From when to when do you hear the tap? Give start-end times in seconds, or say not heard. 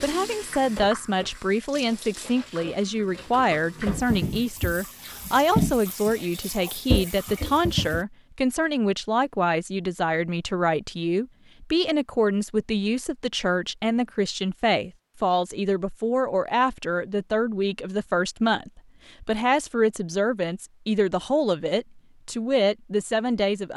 0.0-8.1.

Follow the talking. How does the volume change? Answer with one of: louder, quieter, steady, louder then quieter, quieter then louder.
steady.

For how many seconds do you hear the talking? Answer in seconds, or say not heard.
24 s.